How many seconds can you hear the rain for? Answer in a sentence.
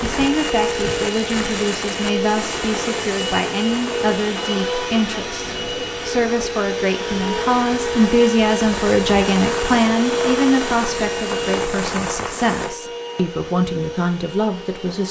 The rain can be heard for 13 seconds in total.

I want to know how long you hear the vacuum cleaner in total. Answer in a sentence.
The vacuum cleaner can be heard for 15 seconds in total.